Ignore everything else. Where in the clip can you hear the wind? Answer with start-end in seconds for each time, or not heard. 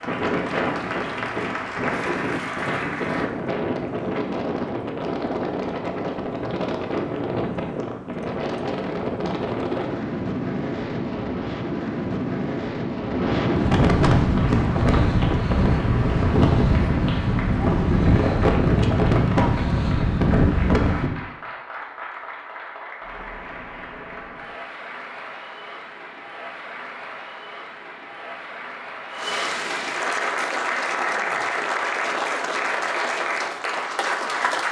0.0-21.1.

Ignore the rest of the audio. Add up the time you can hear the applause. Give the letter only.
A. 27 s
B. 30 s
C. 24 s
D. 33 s
C.